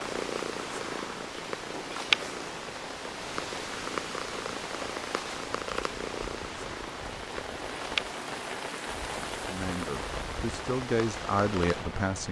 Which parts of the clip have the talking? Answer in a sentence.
You can hear the talking from 9.4 to 12.2 s.